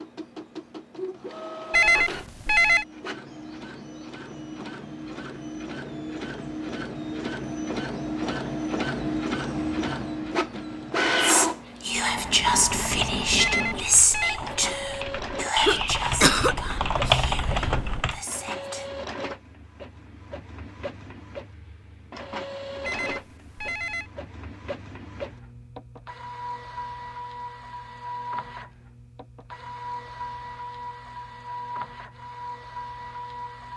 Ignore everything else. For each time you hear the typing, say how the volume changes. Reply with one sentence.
The typing can be heard from 12.7 to 18.2 s, getting louder.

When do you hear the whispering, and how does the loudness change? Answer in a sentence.
The whispering can be heard from 11.2 to 18.9 s, getting quieter.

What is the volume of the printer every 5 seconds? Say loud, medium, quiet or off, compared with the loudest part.
medium, loud, loud, medium, medium, medium, medium.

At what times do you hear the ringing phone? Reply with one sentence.
The ringing phone can be heard from 1.7 to 2.9 s, from 13.3 to 14.4 s and from 22.9 to 24.1 s.